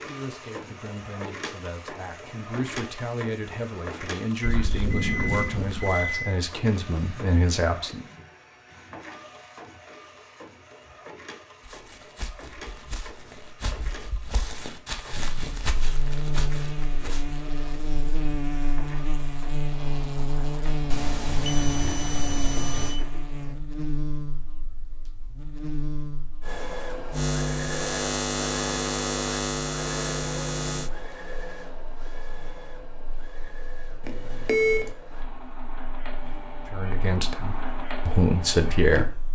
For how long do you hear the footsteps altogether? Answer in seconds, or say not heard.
6 s.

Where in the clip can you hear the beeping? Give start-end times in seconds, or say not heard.
4.4-6.3, 20.9-23.0, 34.0-34.9.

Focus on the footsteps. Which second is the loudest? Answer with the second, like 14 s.
16 s.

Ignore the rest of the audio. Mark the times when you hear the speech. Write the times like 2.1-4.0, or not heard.
0.0-8.1, 36.7-39.3.